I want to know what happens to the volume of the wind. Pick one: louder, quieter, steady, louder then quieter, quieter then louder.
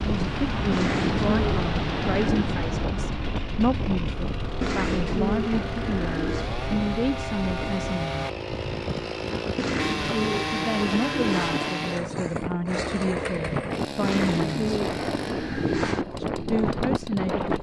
quieter then louder.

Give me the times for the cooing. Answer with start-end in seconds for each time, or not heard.
0.7-2.5, 4.6-6.5, 9.6-11.6, 14.0-16.1.